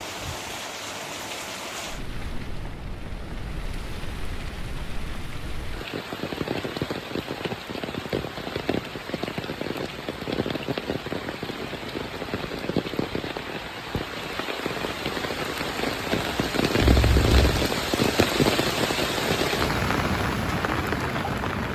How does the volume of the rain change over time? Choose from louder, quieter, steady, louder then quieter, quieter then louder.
louder.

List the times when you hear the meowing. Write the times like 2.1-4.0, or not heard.
16.8-17.6.